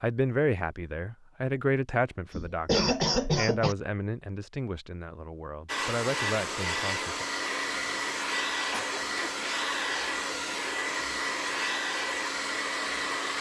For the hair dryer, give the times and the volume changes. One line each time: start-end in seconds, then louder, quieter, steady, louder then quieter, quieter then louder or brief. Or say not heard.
5.7-13.3 steady.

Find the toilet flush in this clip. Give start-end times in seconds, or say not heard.
not heard.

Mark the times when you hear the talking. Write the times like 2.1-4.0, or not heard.
0.0-7.2.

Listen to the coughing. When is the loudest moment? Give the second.
3 s.